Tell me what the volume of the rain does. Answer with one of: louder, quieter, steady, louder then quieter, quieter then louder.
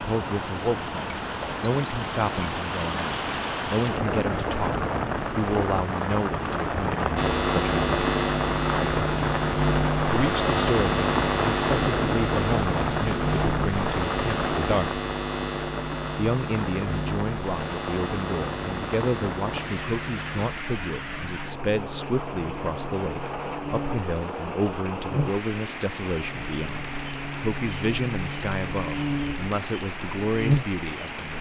quieter.